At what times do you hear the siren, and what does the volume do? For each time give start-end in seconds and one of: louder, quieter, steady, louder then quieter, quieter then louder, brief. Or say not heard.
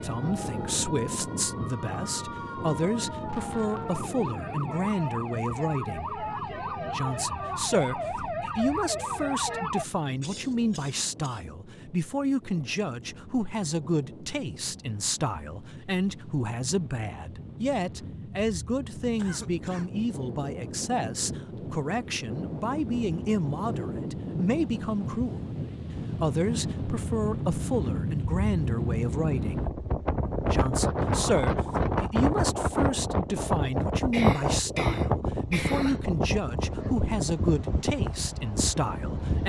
0.0-9.8 louder.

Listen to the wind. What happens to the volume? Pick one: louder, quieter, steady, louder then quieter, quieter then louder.
quieter then louder.